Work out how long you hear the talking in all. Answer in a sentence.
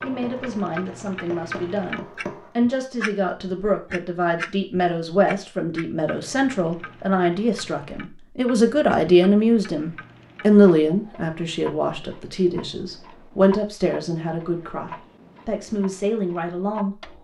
You can hear the talking for 17 seconds altogether.